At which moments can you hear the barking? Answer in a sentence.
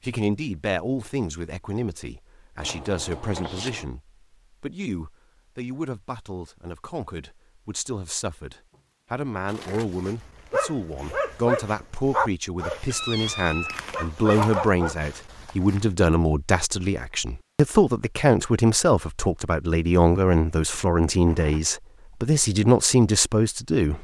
The barking can be heard from 9.8 to 15.8 s.